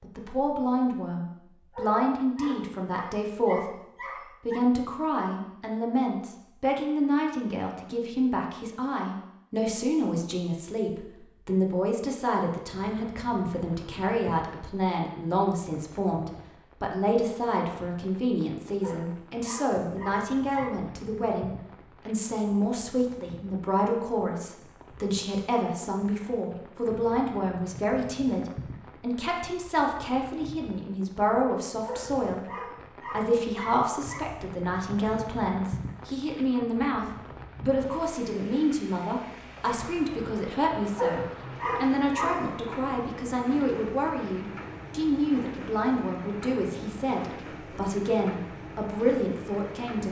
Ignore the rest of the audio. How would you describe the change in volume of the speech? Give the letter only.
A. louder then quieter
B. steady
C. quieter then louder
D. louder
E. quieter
B.